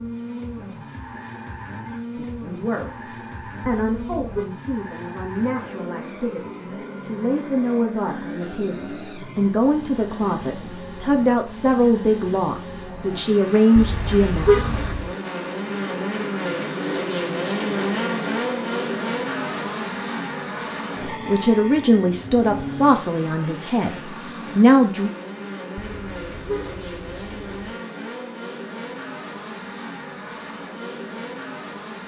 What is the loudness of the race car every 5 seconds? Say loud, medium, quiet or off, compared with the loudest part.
medium, medium, medium, loud, medium, medium, medium.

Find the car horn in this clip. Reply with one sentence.
The car horn can be heard from 3.8 to 4.5 s, from 13.8 to 15.1 s and from 25.8 to 27.8 s.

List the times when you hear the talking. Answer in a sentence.
You can hear the talking from 2.1 to 14.7 s and from 21.1 to 25.1 s.